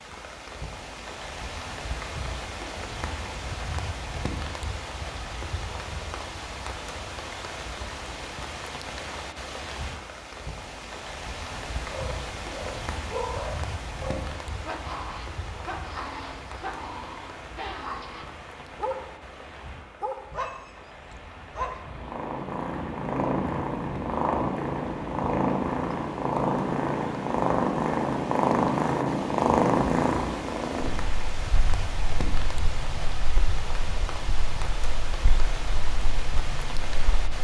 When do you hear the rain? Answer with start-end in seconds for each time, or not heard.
0.0-37.3.